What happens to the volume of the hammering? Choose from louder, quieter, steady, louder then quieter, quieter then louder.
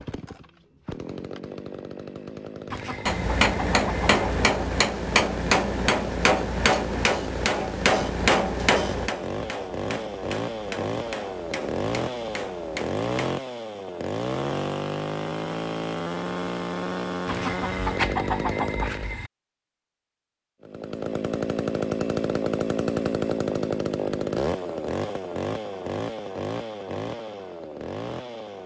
quieter.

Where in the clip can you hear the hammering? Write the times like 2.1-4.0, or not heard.
3.0-13.3.